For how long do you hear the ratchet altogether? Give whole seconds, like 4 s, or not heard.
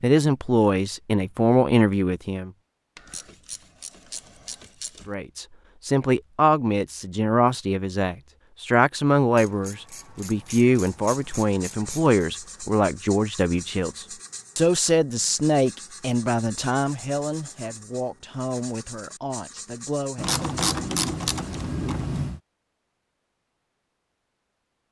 7 s.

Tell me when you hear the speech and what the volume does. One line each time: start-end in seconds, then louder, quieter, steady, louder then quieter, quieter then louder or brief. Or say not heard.
0.0-2.5 brief
5.0-20.4 quieter.